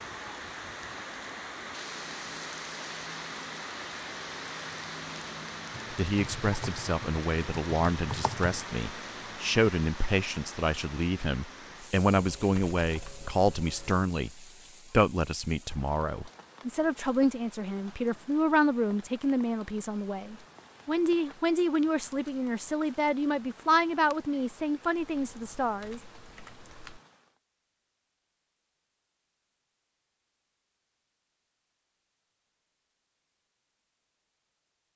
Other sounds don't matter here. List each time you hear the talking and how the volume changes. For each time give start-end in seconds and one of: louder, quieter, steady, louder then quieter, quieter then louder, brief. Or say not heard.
5.9-26.0 steady.